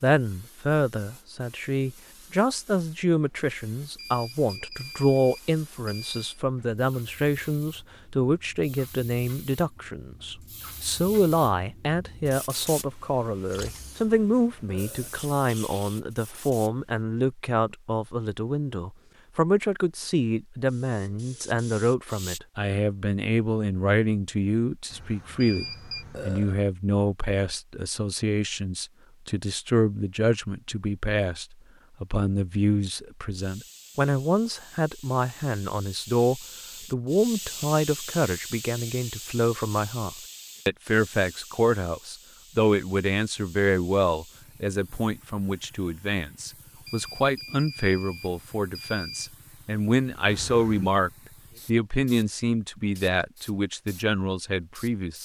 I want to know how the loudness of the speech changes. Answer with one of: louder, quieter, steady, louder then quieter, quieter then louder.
steady.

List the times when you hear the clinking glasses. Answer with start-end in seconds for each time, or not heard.
not heard.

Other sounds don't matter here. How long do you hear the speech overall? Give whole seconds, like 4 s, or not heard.
55 s.